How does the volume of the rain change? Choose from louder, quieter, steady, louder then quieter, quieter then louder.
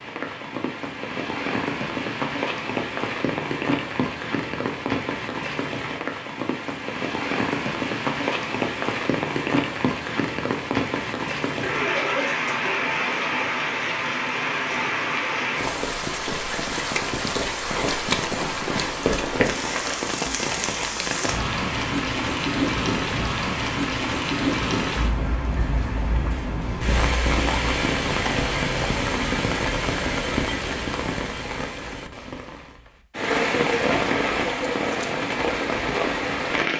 steady.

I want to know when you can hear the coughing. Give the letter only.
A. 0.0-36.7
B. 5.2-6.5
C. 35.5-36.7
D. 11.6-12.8
D.